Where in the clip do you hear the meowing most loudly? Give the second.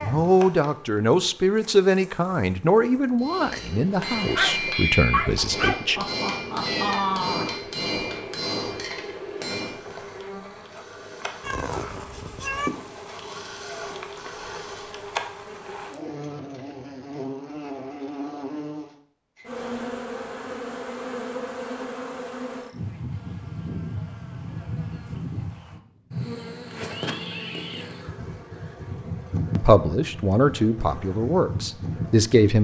7 s.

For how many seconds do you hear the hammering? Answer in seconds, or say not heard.
7 s.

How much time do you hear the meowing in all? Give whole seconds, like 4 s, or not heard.
4 s.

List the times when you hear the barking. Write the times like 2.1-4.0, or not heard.
4.3-5.8.